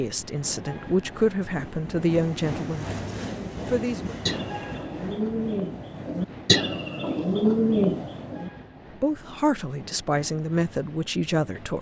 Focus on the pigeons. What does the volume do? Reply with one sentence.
The volume of the pigeons goes up.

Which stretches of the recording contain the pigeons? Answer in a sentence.
You can hear the pigeons from 3.2 to 8.5 s.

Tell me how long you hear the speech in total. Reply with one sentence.
You can hear the speech for 7 seconds altogether.